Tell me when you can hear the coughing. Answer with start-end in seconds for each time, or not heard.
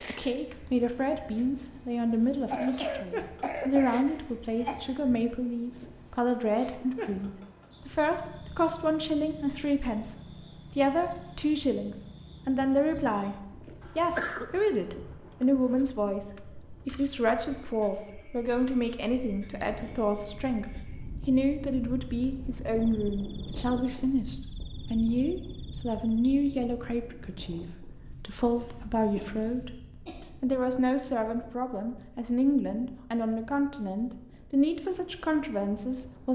2.5-4.8, 13.8-14.6, 28.1-30.2.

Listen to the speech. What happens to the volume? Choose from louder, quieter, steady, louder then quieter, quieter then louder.
steady.